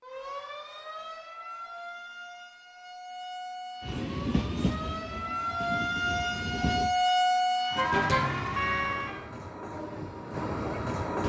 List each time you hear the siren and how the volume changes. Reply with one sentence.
The siren can be heard from 0.0 to 9.2 s, getting louder.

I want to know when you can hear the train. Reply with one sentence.
You can hear the train from 3.8 to 6.9 s and from 8.8 to 11.2 s.